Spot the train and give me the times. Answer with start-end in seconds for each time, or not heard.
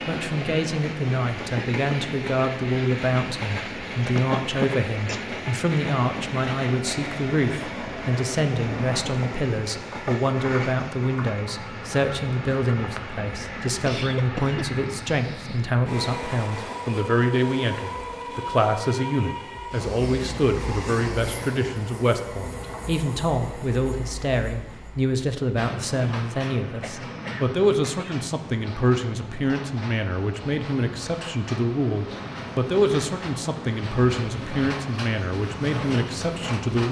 0.0-36.8.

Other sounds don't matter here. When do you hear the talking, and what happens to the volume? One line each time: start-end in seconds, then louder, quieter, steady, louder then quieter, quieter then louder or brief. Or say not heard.
0.1-36.8 steady.